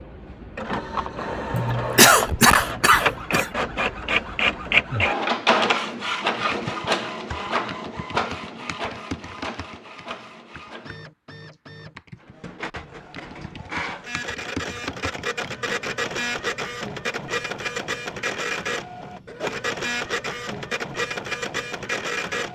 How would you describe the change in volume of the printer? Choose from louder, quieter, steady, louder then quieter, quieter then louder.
quieter then louder.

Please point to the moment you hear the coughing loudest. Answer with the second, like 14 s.
2 s.